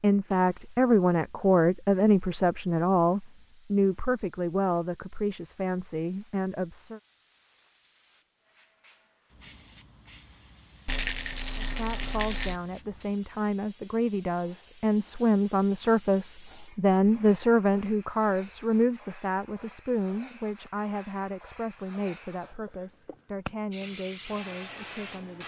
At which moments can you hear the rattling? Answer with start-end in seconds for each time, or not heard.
10.8-12.6.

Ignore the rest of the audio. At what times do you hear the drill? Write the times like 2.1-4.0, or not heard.
not heard.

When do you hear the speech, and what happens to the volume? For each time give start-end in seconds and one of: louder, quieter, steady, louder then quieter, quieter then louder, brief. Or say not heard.
0.0-7.0 quieter
11.6-25.4 louder then quieter.